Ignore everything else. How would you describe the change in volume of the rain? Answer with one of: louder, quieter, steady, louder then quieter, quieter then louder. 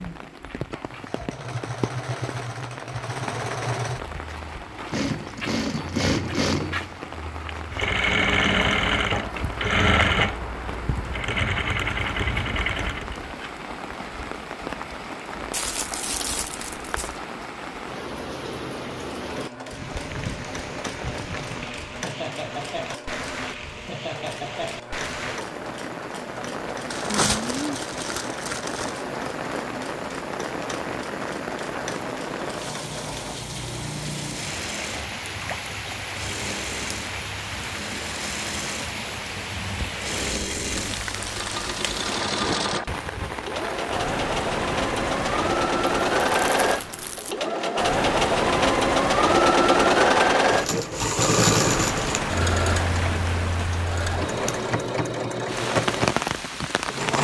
louder.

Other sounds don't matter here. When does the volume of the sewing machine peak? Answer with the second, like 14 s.
50 s.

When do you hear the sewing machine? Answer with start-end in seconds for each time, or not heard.
0.0-13.2, 19.1-57.1.